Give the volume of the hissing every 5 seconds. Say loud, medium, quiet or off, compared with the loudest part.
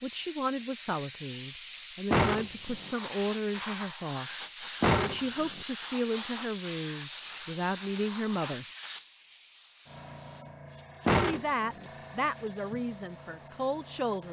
loud, loud, medium.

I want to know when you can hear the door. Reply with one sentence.
The door can be heard from 2.1 to 2.9 s, from 4.8 to 5.7 s and from 11.1 to 11.8 s.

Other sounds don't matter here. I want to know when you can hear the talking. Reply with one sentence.
You can hear the talking from 0.0 to 8.7 s and from 11.1 to 14.2 s.